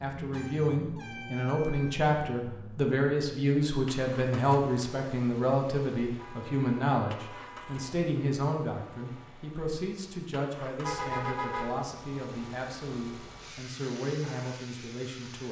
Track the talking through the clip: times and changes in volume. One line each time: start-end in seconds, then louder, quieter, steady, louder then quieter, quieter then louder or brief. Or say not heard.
0.0-15.4 quieter.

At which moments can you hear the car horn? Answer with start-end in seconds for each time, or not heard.
0.3-2.1, 6.2-8.0, 10.8-11.9.